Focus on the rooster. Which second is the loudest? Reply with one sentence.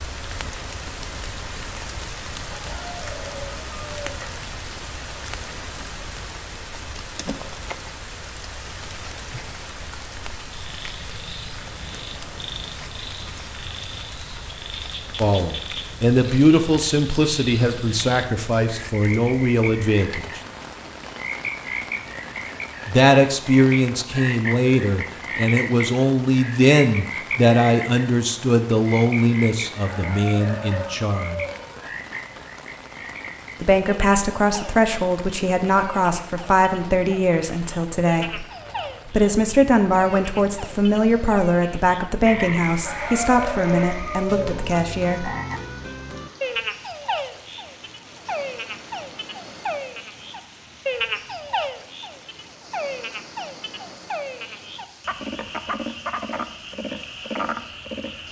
The volume of the rooster peaks at 44 seconds.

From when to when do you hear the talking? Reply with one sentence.
You can hear the talking from 15.2 to 20.4 s, from 22.9 to 31.4 s, from 33.6 to 38.4 s and from 39.0 to 45.3 s.